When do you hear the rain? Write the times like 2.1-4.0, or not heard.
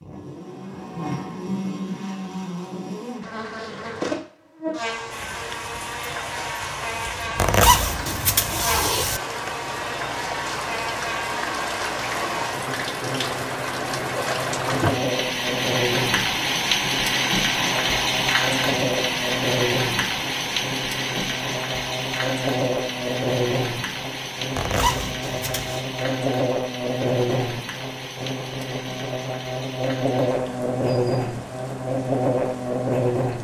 5.1-33.3.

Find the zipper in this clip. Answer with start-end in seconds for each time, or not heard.
7.3-9.2, 24.6-25.8.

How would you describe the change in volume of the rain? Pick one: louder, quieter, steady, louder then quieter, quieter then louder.
louder then quieter.